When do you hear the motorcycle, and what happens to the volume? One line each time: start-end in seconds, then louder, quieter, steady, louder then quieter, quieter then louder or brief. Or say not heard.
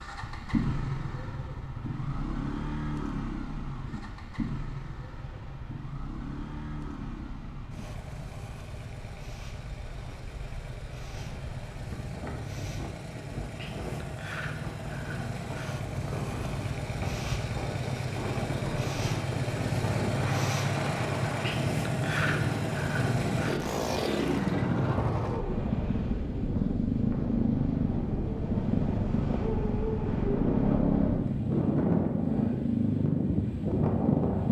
0.0-34.4 quieter then louder.